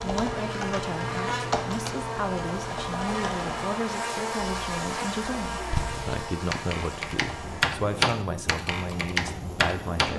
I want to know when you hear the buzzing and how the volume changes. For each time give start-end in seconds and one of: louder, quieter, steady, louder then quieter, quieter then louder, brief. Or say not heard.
0.0-10.1 quieter.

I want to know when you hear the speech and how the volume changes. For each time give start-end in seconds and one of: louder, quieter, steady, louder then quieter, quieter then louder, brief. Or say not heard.
0.0-10.1 steady.